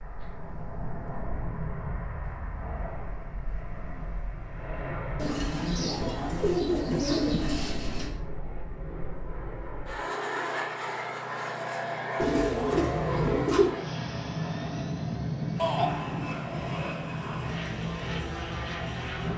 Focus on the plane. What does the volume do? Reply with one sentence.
The loudness of the plane goes up.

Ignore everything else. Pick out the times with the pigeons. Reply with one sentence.
You can hear the pigeons from 5.2 to 8.1 s and from 12.2 to 13.8 s.